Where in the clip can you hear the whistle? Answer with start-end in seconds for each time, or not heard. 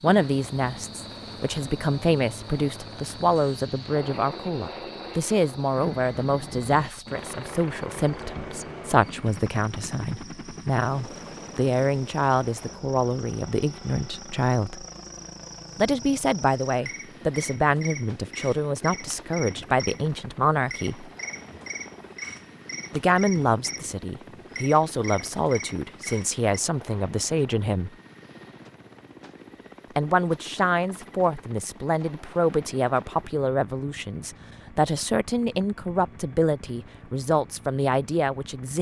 not heard.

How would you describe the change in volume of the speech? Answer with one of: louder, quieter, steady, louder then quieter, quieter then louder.
steady.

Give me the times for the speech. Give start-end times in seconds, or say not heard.
0.0-14.8, 15.8-21.1, 22.9-27.9, 29.9-38.7.